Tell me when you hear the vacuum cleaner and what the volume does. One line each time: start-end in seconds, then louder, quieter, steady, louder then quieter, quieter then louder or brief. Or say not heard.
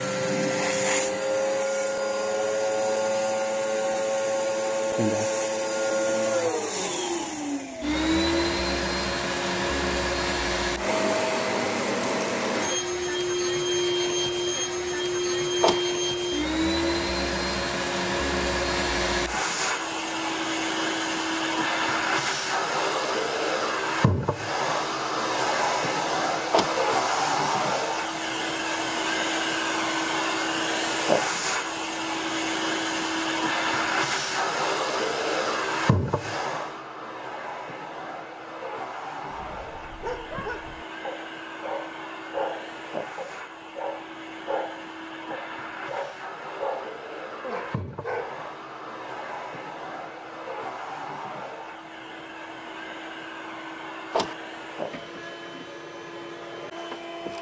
0.0-57.3 quieter.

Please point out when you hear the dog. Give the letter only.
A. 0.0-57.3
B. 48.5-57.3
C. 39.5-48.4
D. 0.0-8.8
C.